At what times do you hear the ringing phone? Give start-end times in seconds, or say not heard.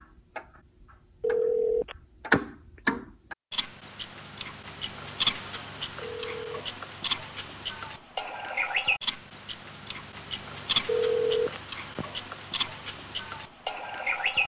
1.2-2.4, 6.0-6.5, 10.8-12.1.